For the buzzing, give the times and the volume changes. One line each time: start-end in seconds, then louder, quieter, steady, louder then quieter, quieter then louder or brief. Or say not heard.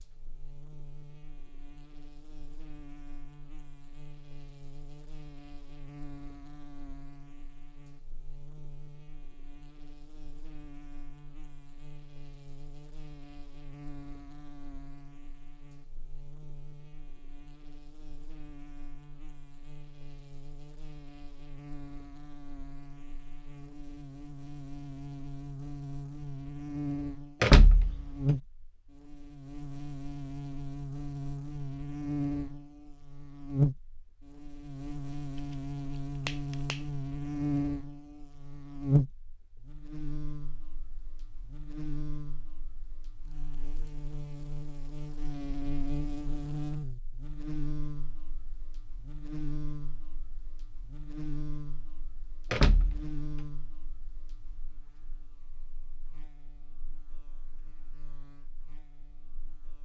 0.0-59.8 louder then quieter.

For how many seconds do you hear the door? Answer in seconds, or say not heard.
2 s.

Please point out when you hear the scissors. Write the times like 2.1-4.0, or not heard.
35.4-36.9.